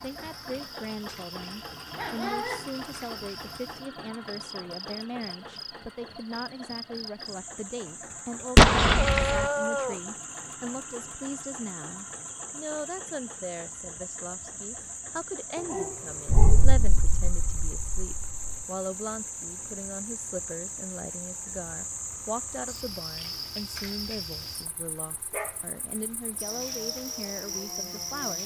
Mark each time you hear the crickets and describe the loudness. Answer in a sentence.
You can hear the crickets from 0.0 to 28.4 s, getting louder.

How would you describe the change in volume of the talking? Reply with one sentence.
The volume of the talking stays about the same.